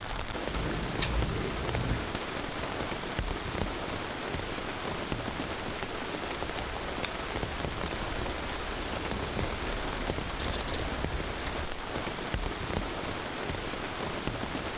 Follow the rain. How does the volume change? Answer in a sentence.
The volume of the rain stays about the same.